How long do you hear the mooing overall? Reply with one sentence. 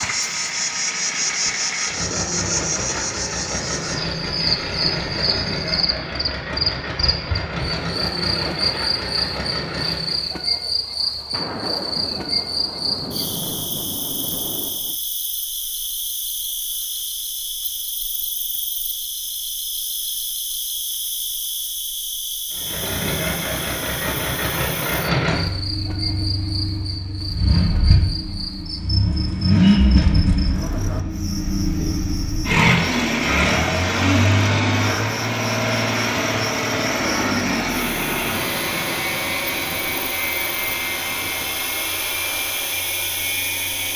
You can't hear the mooing here.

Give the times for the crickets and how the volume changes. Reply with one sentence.
The crickets can be heard from 0.0 to 43.9 s, getting quieter.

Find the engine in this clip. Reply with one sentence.
The engine can be heard from 0.0 to 10.3 s and from 22.5 to 43.9 s.